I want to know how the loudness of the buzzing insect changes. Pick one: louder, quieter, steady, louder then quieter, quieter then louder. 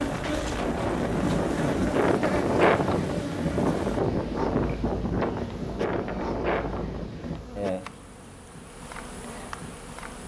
quieter.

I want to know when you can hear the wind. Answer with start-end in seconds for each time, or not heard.
0.0-7.4.